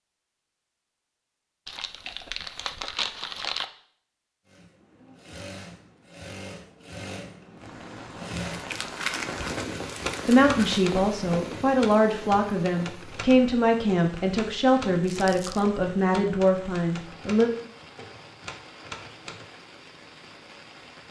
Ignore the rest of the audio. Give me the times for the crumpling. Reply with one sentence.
You can hear the crumpling from 1.6 to 3.6 s, from 8.3 to 10.8 s and from 15.0 to 15.7 s.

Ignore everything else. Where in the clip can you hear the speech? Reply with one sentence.
You can hear the speech from 10.2 to 17.5 s.